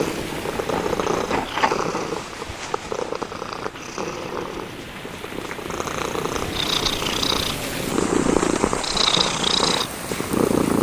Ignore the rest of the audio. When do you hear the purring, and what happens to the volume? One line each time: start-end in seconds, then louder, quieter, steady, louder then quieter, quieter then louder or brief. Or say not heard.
0.0-10.7 quieter then louder.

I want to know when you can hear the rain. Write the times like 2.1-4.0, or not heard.
0.0-10.7.